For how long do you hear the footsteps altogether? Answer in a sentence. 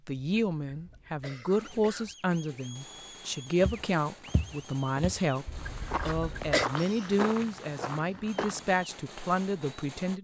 The footsteps can be heard for 5 seconds in total.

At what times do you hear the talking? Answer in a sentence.
The talking can be heard from 0.1 to 5.5 s and from 6.0 to 10.1 s.